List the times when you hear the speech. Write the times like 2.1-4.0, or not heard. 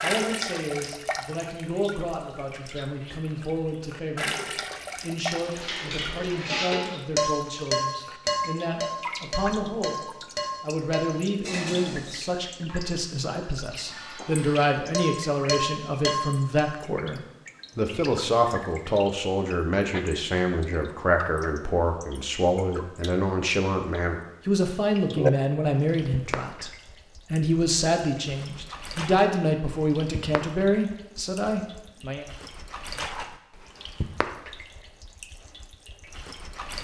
0.0-26.7, 27.3-32.2.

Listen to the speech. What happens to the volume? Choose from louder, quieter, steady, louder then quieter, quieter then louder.
louder.